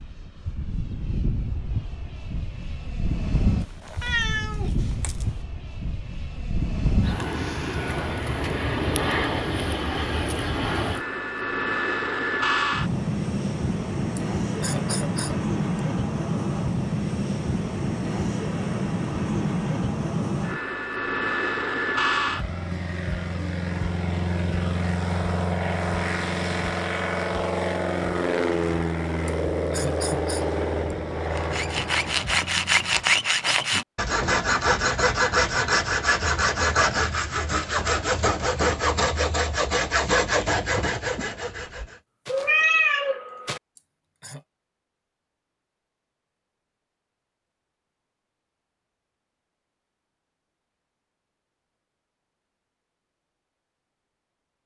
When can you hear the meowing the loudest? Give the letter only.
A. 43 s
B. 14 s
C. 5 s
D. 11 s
A.